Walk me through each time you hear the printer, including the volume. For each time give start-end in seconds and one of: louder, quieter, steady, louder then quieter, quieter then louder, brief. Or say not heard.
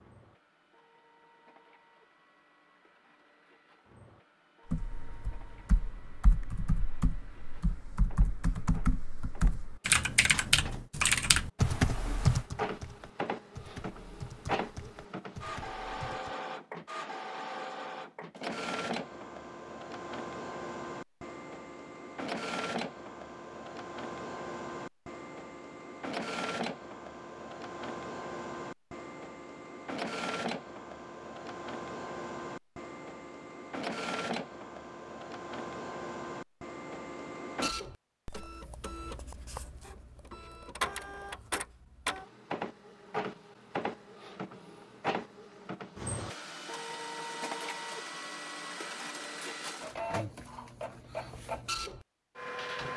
0.0-52.9 louder.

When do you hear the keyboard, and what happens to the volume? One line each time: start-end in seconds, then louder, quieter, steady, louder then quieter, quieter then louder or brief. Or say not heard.
4.7-16.4 louder then quieter.